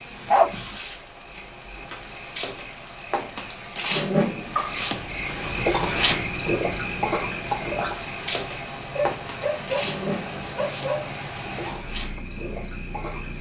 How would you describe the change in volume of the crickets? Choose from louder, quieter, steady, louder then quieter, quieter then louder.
louder then quieter.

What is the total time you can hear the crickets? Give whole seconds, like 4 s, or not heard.
13 s.